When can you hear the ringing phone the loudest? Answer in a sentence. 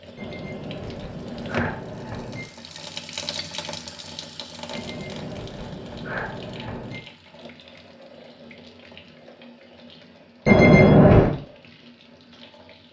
The loudest moment of the ringing phone is at 11 seconds.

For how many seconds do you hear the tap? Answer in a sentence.
You can hear the tap for 13 seconds altogether.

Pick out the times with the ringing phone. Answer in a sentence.
The ringing phone can be heard from 0.1 to 2.5 s, from 4.7 to 7.0 s and from 10.4 to 11.3 s.